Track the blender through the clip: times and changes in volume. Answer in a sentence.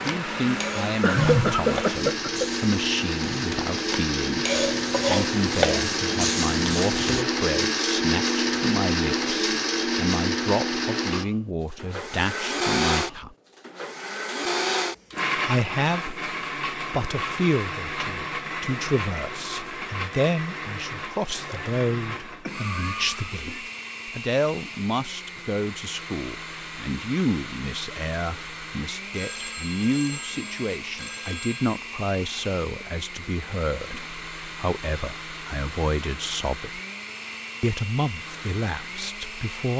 The blender can be heard from 0.0 to 39.7 s, getting quieter.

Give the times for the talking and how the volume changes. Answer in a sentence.
You can hear the talking from 0.0 to 13.3 s, at a steady volume; from 15.3 to 36.8 s, at a steady volume; and briefly from 37.6 to 39.7 s.